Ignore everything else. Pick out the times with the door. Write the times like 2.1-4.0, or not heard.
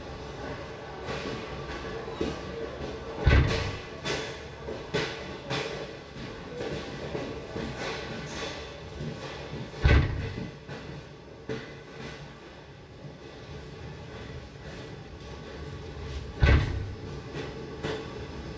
3.2-3.8, 9.8-10.3, 16.4-16.9.